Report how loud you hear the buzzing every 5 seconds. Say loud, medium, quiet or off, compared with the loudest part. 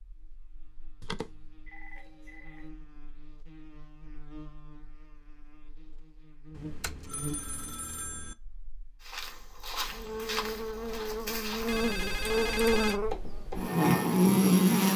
quiet, quiet, loud.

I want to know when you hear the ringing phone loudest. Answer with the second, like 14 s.
13 s.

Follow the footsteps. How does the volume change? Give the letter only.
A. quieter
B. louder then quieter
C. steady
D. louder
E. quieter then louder
E.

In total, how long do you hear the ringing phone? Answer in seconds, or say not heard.
5 s.